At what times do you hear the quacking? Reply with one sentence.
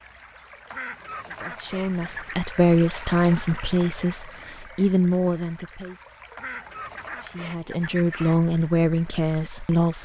The quacking can be heard from 0.7 to 2.5 s and from 6.3 to 8.4 s.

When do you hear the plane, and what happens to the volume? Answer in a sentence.
The plane can't be heard in this clip.